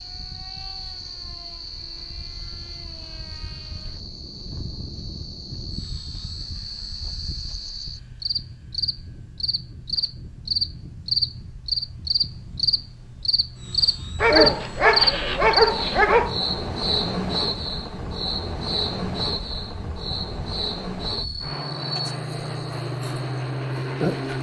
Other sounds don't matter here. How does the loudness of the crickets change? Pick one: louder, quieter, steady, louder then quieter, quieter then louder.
louder then quieter.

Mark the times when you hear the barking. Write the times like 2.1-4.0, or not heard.
14.2-16.4.